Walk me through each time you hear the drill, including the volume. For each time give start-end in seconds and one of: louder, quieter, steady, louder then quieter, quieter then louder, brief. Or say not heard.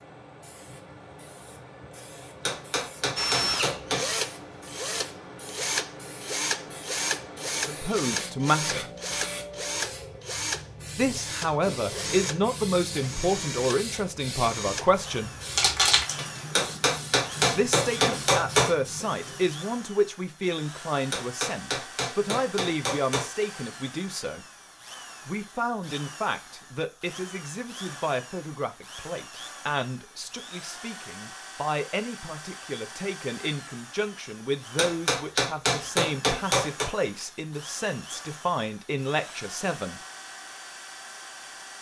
3.1-41.7 quieter.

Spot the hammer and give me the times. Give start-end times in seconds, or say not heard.
2.5-4.2, 16.6-18.8, 21.1-23.4, 34.8-36.9.